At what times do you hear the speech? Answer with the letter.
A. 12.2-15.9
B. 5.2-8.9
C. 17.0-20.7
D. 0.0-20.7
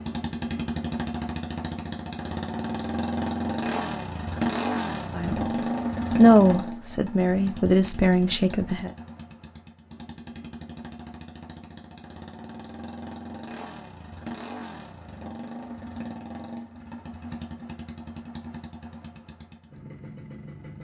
B.